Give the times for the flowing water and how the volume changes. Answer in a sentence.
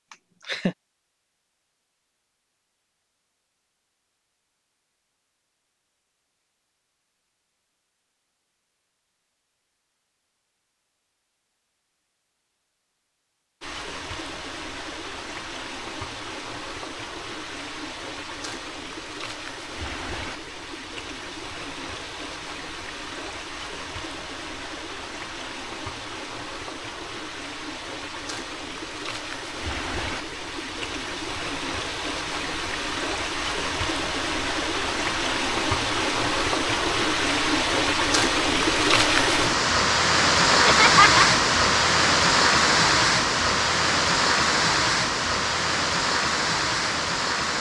You can hear the flowing water from 13.6 to 47.5 s, getting louder.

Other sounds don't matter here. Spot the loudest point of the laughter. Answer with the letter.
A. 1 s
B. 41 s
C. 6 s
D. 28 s
B.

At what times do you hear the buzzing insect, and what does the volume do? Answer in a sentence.
You can't hear the buzzing insect here.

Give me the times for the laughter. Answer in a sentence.
You can hear the laughter from 0.1 to 0.8 s and from 40.6 to 41.2 s.